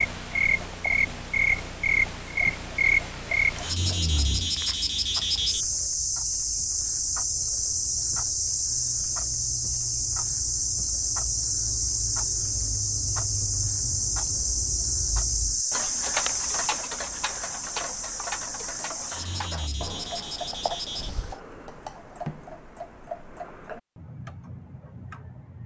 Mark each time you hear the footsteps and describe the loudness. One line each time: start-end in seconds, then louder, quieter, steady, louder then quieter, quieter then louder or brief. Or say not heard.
not heard.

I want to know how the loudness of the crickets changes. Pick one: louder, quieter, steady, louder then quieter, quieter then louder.
quieter.